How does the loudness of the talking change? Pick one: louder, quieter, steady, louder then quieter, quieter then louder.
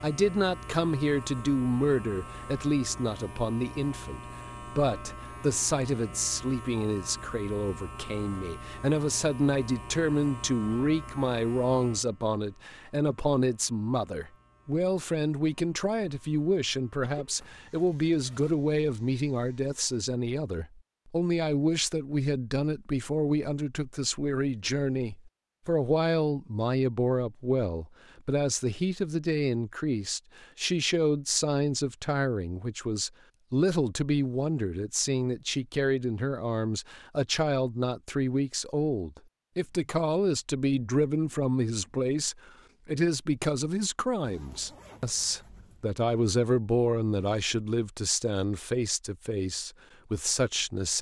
steady.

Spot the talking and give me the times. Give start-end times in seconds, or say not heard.
0.0-50.9.